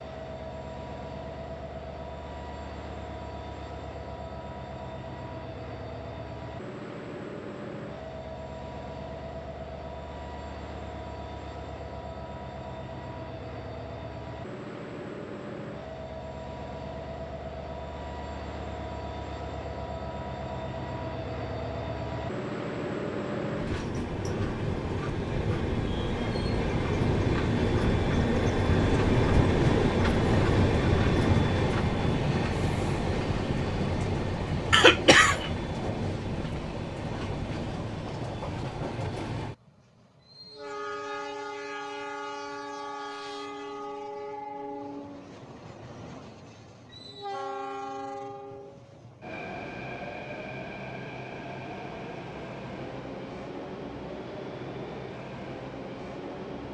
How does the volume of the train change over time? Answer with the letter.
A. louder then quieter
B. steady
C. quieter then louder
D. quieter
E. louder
A.